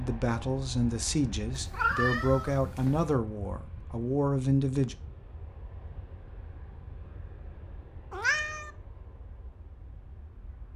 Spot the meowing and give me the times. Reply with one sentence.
The meowing can be heard from 1.6 to 3.0 s and from 8.1 to 8.7 s.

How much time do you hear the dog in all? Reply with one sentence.
The dog can't be heard in this clip.